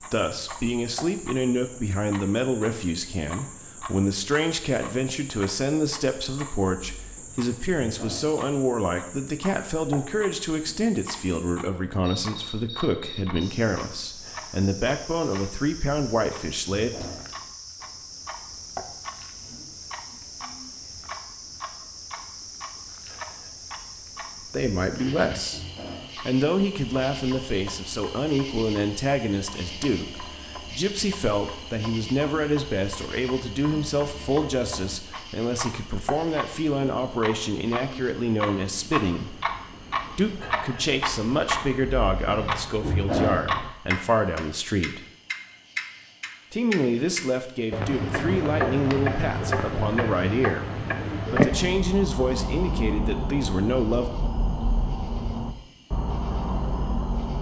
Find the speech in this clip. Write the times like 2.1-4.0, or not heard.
0.1-17.1, 24.5-39.4, 40.1-45.0, 46.5-54.1.